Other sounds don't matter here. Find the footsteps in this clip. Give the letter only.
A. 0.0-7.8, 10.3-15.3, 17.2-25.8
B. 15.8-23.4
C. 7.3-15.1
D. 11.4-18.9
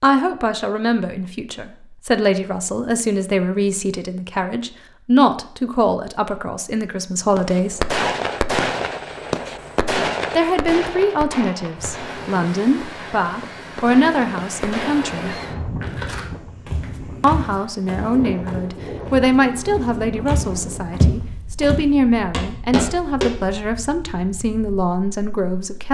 B.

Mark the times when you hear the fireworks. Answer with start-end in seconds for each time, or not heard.
7.3-15.1.